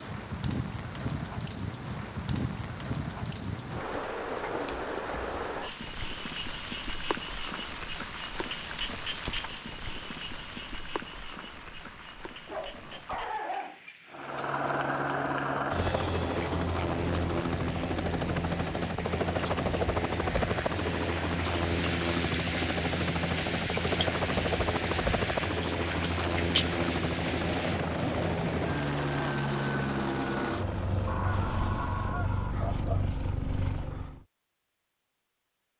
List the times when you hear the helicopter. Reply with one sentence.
The helicopter can be heard from 14.1 to 34.2 s.